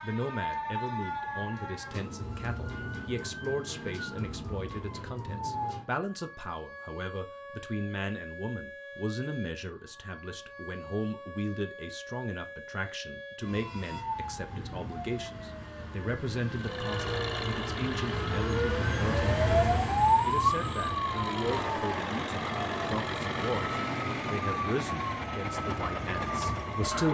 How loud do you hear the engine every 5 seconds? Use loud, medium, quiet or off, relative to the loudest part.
off, off, off, loud, loud, loud.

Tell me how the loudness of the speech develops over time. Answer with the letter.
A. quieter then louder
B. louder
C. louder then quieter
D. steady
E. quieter
D.